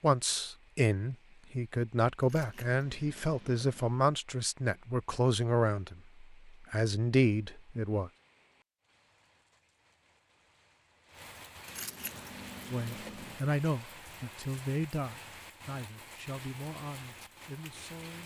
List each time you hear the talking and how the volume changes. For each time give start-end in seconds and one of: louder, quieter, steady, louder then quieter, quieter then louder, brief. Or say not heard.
0.0-8.1 steady
12.7-18.2 quieter.